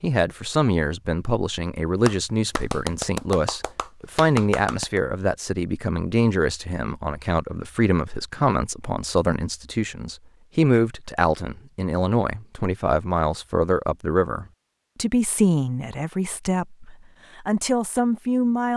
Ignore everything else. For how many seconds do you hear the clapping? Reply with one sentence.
You can hear the clapping for 3 seconds altogether.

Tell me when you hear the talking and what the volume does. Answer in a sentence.
The talking can be heard from 0.0 to 18.7 s, at a steady volume.